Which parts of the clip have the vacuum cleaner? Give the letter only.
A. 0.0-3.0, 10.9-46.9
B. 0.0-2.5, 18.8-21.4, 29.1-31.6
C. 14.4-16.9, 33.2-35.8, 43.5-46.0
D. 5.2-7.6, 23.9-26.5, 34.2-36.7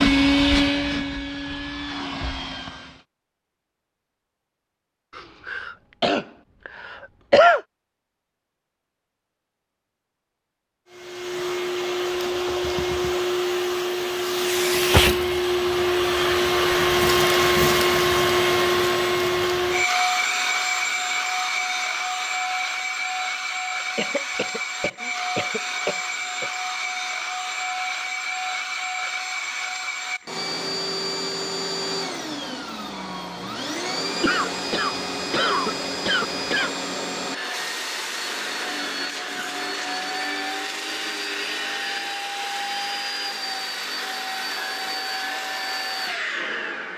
A.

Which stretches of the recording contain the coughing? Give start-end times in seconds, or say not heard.
5.2-7.6, 23.9-26.5, 34.2-36.7.